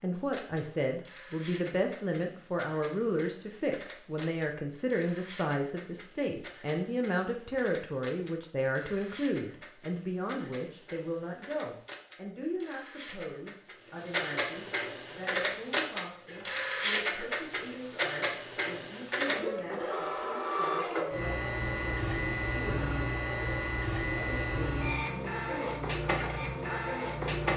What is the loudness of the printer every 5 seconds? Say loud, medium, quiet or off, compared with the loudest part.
quiet, quiet, medium, loud, loud, loud.